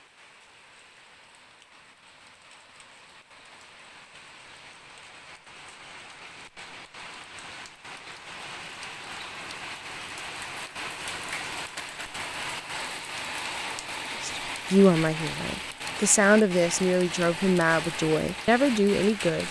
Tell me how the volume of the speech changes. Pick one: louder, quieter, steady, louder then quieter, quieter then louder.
steady.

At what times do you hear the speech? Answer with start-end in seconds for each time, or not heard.
14.2-19.4.